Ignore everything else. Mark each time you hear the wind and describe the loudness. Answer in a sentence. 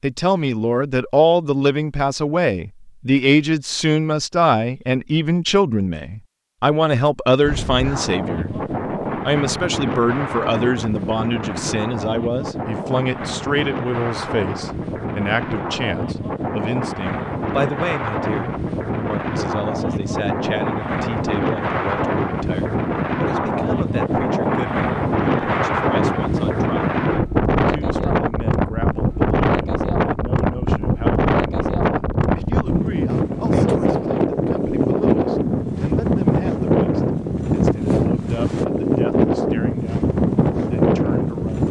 You can hear the wind from 7.4 to 41.6 s, getting louder.